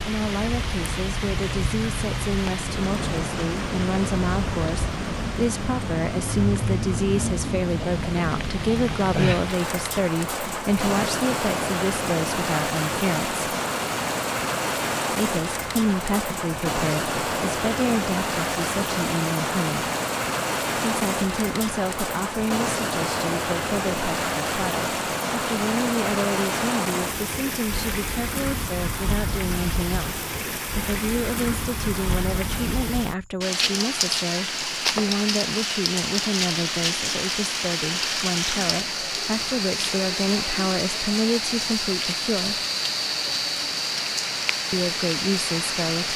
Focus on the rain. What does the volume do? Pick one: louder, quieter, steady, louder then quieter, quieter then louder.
steady.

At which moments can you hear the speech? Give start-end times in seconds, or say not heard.
0.0-13.4, 15.1-19.9, 20.8-42.6, 44.7-46.1.